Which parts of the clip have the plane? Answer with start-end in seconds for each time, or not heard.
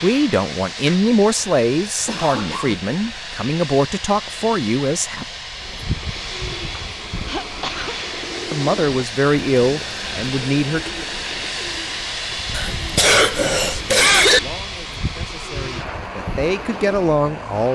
0.0-17.7.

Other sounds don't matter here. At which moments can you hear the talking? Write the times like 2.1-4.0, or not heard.
0.0-5.2, 8.5-10.9, 13.5-17.7.